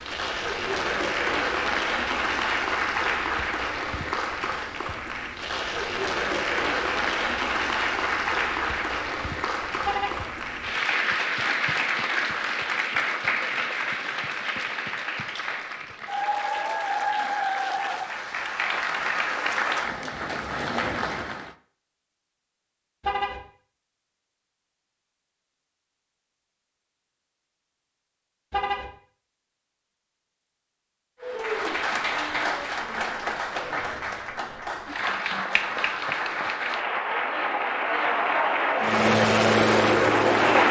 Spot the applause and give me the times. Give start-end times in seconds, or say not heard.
0.0-21.6, 31.2-40.6.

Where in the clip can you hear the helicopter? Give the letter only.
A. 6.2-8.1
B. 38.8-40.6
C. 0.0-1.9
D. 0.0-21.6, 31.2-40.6
B.